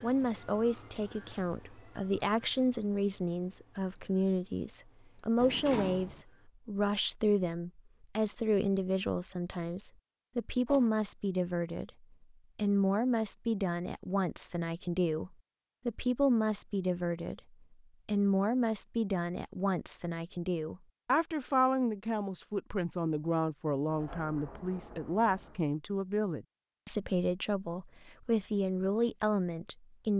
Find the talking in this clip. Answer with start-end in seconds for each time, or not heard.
0.0-11.9, 12.6-17.4, 18.1-30.1.